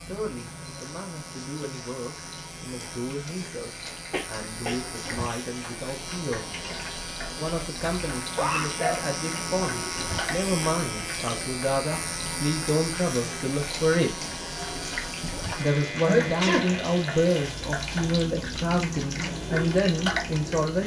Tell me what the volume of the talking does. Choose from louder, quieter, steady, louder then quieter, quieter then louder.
louder.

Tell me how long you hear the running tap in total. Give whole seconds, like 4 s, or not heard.
21 s.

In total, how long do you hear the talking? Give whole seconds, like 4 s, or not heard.
19 s.